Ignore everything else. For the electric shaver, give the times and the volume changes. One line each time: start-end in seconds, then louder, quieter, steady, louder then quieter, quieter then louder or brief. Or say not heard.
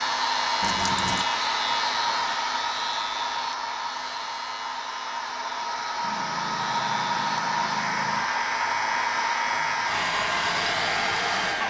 0.0-11.6 quieter then louder.